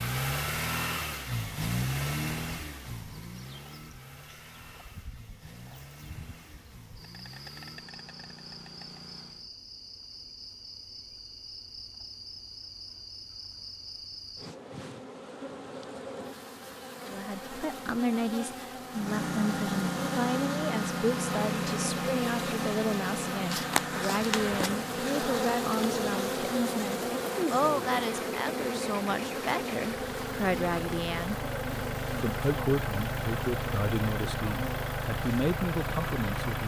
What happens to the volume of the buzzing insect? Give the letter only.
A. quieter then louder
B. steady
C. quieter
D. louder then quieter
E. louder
D.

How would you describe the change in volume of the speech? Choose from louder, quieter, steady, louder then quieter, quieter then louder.
steady.